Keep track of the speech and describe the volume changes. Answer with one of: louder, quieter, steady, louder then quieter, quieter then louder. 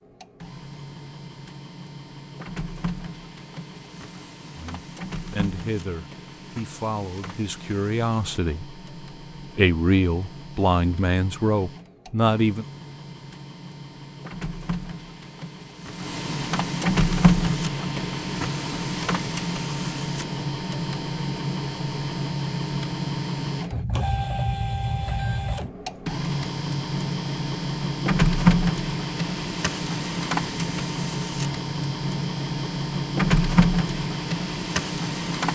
louder.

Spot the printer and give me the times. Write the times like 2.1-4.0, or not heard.
0.0-35.5.